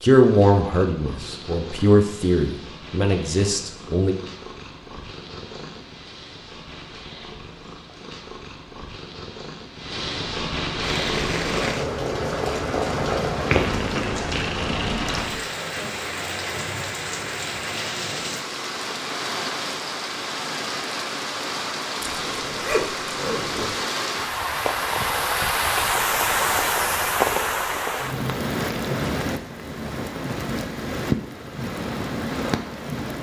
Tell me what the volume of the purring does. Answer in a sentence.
The loudness of the purring goes up.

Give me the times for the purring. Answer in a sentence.
The purring can be heard from 0.1 to 15.4 s.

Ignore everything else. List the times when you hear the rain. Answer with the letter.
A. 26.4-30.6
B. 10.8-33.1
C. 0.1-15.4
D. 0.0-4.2
B.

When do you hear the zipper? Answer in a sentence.
The zipper can be heard from 22.0 to 23.8 s.